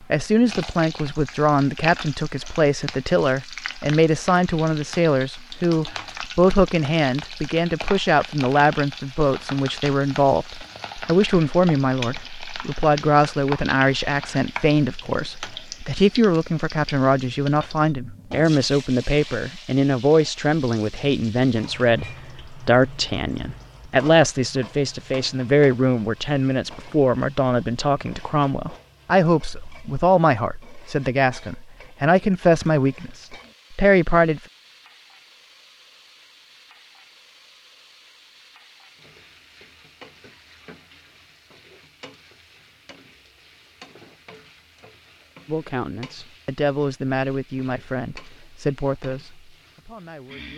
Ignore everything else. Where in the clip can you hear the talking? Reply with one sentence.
You can hear the talking from 0.1 to 34.4 s and from 45.5 to 50.5 s.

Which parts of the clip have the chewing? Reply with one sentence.
The chewing can't be heard in this clip.